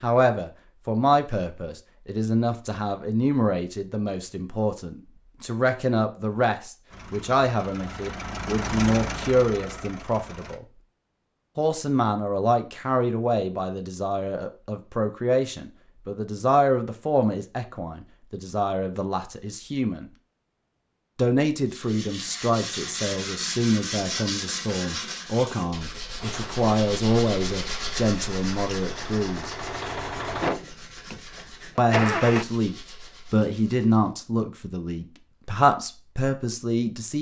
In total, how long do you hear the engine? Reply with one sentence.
The engine can be heard for 10 seconds in total.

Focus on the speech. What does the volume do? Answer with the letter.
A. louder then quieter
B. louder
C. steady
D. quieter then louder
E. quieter
C.